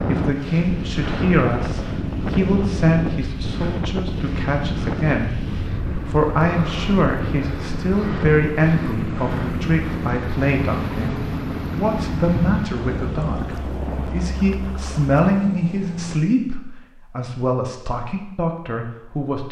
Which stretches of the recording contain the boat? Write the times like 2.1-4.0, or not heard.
0.2-16.1.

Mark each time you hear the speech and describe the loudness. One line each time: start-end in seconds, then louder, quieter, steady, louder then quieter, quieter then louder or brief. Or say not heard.
0.1-19.4 steady.